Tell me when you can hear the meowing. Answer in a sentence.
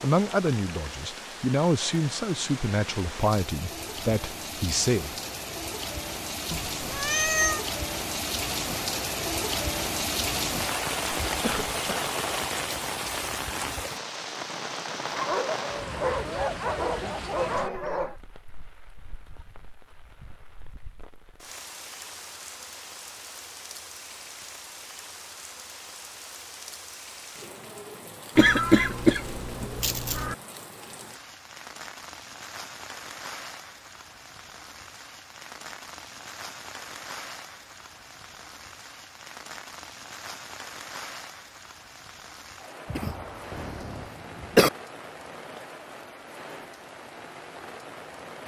The meowing can be heard from 6.5 to 7.6 s and from 28.4 to 30.4 s.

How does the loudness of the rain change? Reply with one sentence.
The volume of the rain goes down.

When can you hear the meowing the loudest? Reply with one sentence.
The loudest moment of the meowing is at 7 seconds.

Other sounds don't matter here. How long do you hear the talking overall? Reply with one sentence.
The talking can be heard for 5 seconds in total.